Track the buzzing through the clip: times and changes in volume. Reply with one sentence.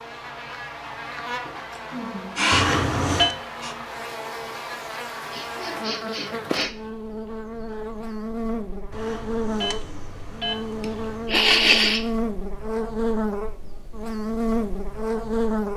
The buzzing can be heard from 0.0 to 15.7 s, getting louder.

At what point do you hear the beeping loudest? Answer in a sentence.
The loudest moment of the beeping is at 3 seconds.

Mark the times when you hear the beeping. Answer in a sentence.
The beeping can be heard from 2.5 to 3.4 s and from 8.9 to 11.4 s.